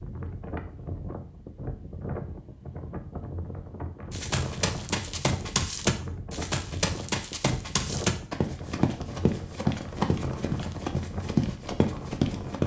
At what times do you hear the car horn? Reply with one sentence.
You can't hear the car horn here.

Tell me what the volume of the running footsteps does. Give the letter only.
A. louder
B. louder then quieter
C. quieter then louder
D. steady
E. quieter
D.